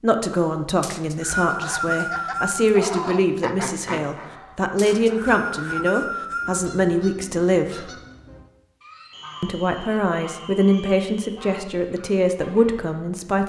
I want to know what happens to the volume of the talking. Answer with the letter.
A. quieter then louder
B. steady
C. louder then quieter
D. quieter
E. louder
B.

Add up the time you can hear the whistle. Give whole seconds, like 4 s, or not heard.
6 s.